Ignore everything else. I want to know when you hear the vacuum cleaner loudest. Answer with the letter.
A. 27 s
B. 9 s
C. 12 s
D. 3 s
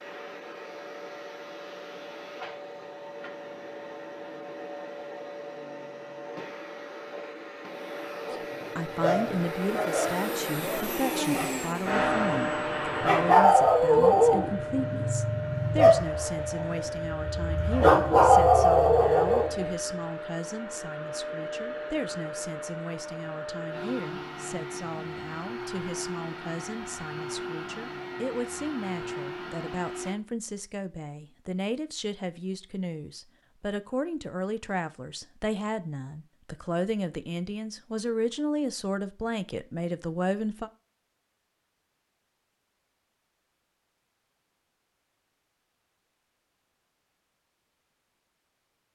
C.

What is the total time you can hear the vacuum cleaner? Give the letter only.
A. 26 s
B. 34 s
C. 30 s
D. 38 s
C.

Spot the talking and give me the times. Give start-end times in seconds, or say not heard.
8.3-40.7.